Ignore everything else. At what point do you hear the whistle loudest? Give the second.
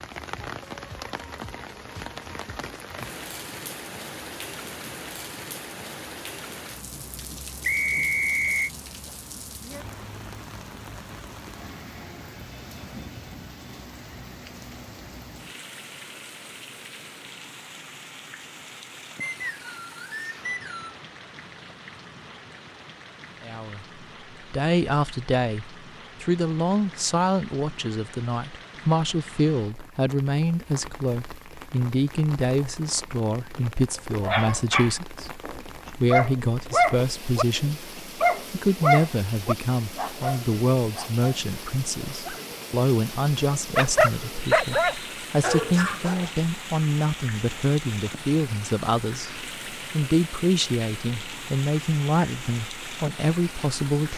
8 s.